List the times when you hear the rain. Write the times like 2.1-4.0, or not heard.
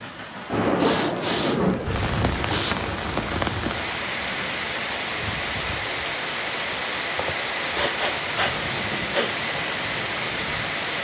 0.0-10.9.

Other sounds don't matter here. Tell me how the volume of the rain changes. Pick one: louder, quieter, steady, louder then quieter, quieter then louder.
steady.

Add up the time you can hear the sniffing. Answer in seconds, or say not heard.
4 s.